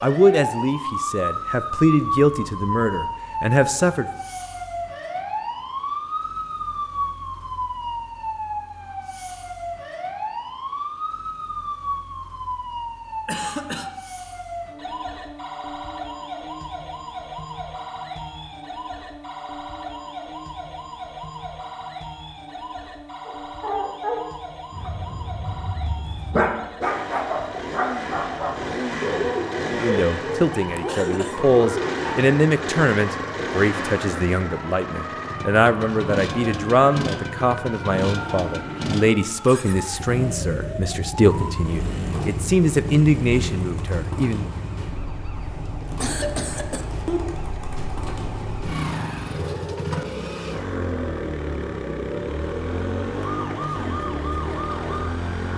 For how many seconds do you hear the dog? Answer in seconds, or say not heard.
9 s.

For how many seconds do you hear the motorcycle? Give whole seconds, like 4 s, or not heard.
29 s.